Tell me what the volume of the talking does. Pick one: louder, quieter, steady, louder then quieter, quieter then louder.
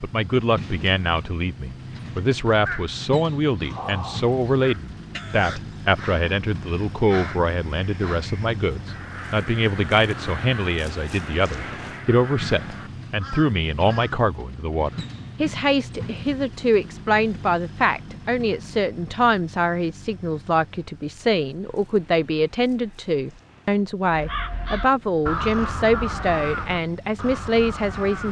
steady.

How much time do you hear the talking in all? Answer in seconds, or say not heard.
28 s.